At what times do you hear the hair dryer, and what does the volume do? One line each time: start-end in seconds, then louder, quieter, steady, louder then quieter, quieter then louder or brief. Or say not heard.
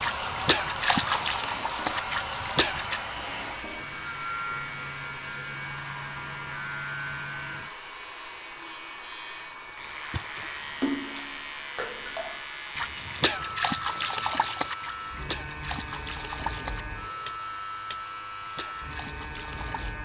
0.0-19.9 quieter.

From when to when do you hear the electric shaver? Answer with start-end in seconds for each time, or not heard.
0.0-19.9.